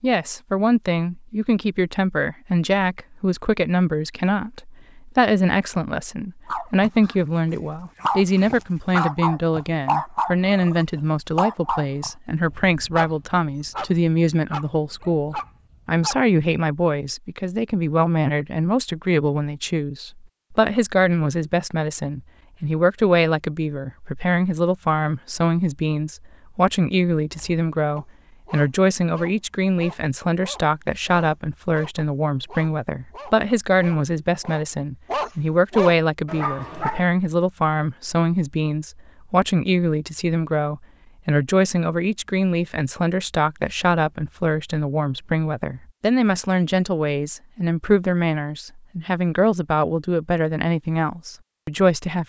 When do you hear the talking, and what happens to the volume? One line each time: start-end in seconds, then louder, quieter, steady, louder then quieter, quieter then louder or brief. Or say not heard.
0.0-52.2 steady.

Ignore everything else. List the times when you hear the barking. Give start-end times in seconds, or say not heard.
6.5-16.2, 27.3-37.0.